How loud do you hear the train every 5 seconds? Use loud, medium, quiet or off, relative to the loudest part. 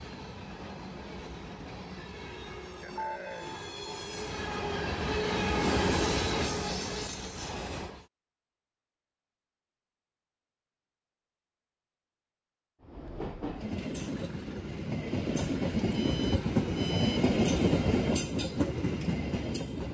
medium, loud, medium, loud.